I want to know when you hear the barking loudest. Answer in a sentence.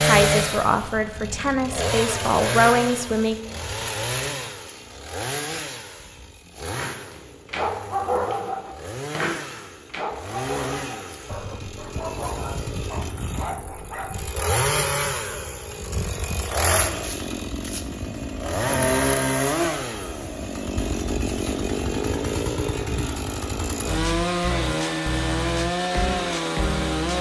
The loudest moment of the barking is at 8 seconds.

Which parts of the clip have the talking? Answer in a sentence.
The talking can be heard from 0.0 to 3.4 s.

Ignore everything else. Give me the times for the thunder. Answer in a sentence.
The thunder can't be heard in this clip.